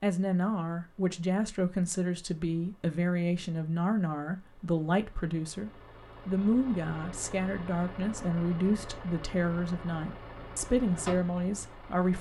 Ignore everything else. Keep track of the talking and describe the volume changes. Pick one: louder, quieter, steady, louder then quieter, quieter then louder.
steady.